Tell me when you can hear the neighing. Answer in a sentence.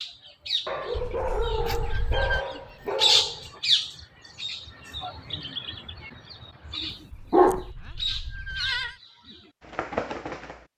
You can hear the neighing from 0.9 to 2.5 s and from 7.1 to 8.9 s.